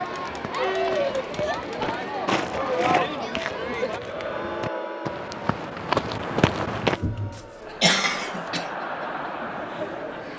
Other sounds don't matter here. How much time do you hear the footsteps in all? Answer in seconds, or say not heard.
7 s.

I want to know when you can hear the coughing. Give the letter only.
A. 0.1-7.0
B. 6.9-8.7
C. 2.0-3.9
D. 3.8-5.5
B.